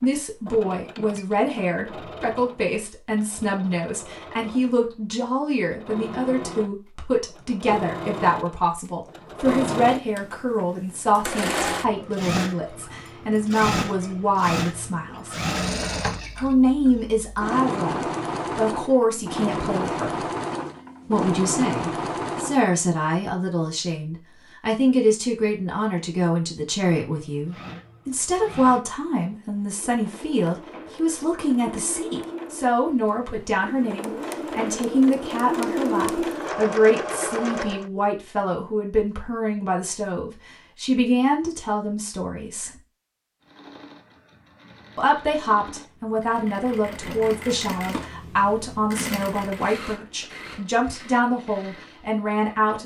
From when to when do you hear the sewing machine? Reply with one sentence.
The sewing machine can be heard from 0.0 to 22.6 s, from 27.1 to 37.9 s and from 43.4 to 52.8 s.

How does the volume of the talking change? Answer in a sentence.
The volume of the talking stays about the same.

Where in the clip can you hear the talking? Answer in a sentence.
The talking can be heard from 0.0 to 15.3 s, from 16.4 to 20.2 s, from 21.1 to 42.8 s and from 45.0 to 52.8 s.